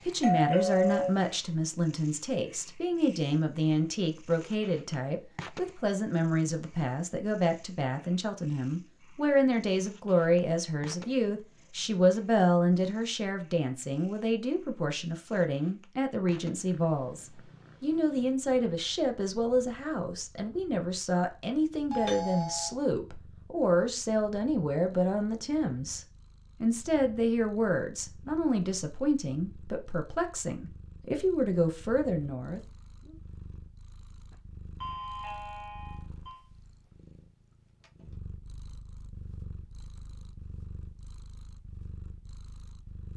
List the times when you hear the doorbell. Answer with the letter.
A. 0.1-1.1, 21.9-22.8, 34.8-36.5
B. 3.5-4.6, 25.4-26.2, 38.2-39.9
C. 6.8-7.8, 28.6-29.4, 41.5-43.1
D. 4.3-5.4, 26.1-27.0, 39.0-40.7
A.